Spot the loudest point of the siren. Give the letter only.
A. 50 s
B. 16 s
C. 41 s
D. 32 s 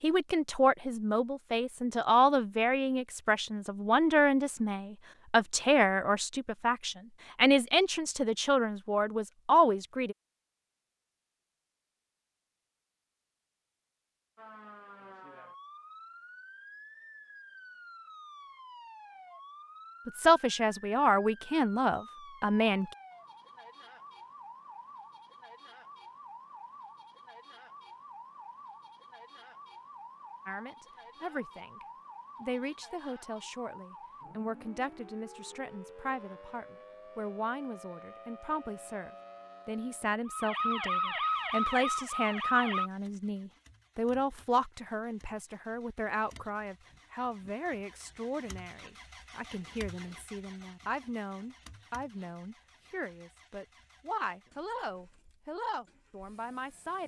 C.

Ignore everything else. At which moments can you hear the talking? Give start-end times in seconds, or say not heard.
0.0-10.2, 20.1-22.9, 30.4-57.0.